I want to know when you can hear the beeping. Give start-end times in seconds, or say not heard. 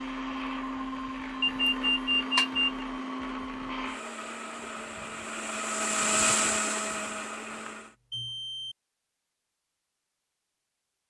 1.4-2.7, 7.2-8.8.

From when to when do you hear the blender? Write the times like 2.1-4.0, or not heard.
0.0-8.0.